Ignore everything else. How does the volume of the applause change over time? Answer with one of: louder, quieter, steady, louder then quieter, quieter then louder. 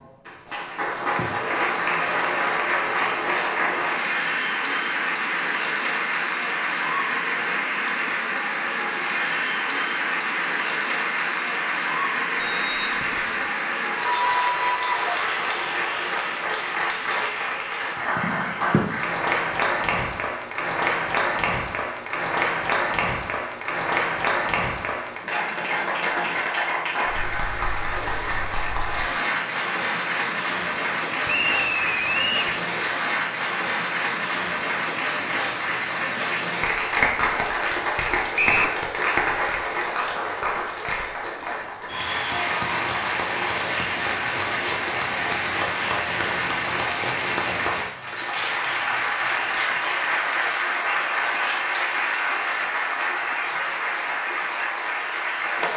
steady.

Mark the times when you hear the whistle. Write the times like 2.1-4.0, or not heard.
12.3-13.5, 31.2-32.5, 38.4-38.8.